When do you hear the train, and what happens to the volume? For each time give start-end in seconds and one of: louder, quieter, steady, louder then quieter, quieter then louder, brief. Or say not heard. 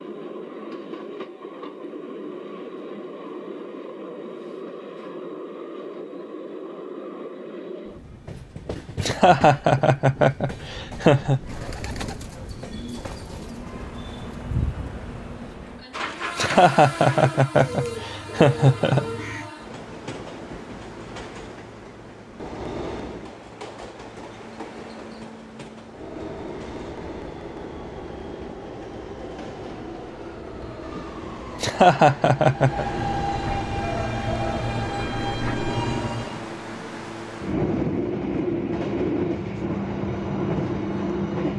0.0-41.5 louder.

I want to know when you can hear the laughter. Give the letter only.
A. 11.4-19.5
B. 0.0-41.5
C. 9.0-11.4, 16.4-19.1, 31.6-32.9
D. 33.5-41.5
C.